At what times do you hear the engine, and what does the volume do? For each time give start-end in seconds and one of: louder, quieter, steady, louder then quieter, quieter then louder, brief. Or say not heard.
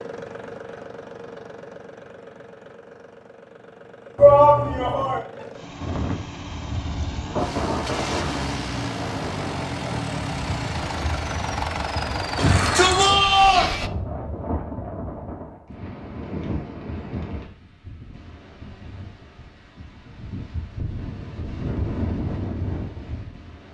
0.0-13.9 louder.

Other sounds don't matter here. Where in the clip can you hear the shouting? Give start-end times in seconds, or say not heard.
4.2-5.2, 12.3-13.8.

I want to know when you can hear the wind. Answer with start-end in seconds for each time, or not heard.
5.8-23.6.